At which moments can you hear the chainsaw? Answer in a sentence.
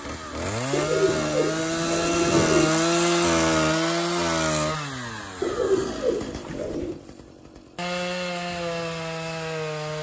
You can hear the chainsaw from 0.0 to 9.9 s.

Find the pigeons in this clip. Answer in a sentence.
You can hear the pigeons from 0.7 to 2.7 s and from 5.4 to 7.0 s.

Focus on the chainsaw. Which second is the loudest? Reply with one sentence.
The loudest moment of the chainsaw is at 3 seconds.